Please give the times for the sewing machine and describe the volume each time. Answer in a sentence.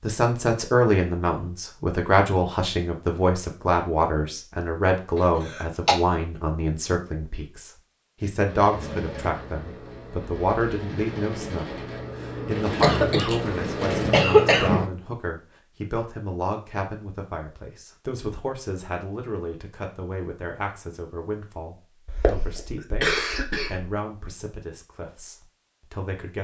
The sewing machine can be heard from 8.4 to 14.9 s, getting louder.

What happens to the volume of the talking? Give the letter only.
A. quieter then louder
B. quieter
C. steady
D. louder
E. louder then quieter
B.